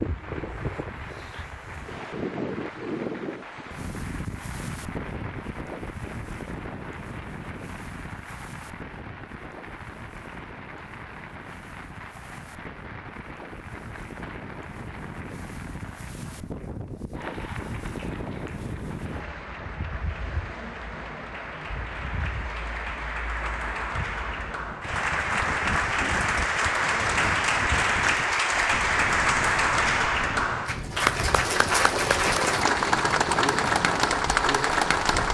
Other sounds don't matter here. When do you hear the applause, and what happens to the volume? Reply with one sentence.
The applause can be heard from 0.0 to 35.2 s, getting louder.